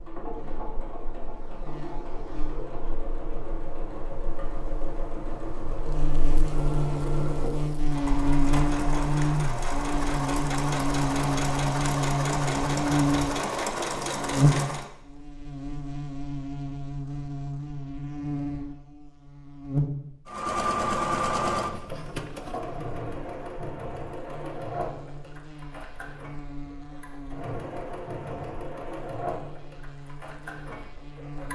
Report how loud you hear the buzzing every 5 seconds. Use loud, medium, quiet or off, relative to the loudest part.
quiet, loud, loud, medium, quiet, quiet, quiet.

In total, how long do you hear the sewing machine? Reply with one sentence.
The sewing machine can be heard for 26 seconds in total.